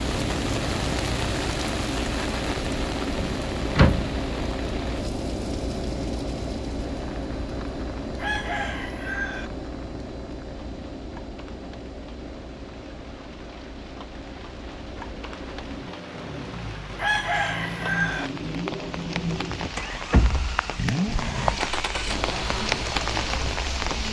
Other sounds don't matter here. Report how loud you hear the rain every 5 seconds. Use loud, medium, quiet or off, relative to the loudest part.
loud, quiet, quiet, medium, loud.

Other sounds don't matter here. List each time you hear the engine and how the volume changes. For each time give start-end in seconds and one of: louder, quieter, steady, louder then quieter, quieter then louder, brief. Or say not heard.
0.0-24.0 quieter then louder.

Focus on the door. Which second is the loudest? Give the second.
4 s.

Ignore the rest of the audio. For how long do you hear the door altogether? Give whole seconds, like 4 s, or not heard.
2 s.